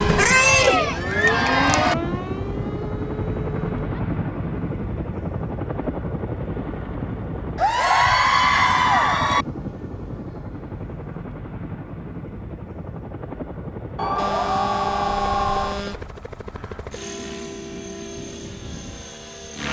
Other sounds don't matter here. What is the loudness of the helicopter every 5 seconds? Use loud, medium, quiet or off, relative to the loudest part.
loud, loud, medium, medium.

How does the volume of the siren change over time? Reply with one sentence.
The volume of the siren goes up, then down.